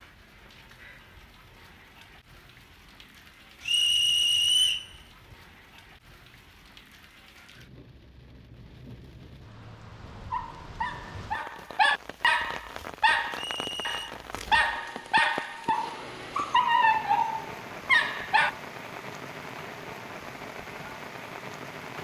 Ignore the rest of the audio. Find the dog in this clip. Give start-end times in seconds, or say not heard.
10.3-18.5.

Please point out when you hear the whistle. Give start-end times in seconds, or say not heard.
3.6-4.8, 13.3-14.1.